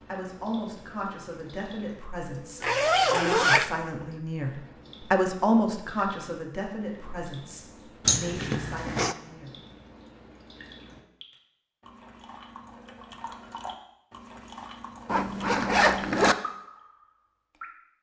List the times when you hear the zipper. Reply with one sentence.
You can hear the zipper from 2.6 to 3.7 s, from 8.1 to 9.2 s and from 15.1 to 16.4 s.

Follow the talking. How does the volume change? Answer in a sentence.
The loudness of the talking goes up, then down.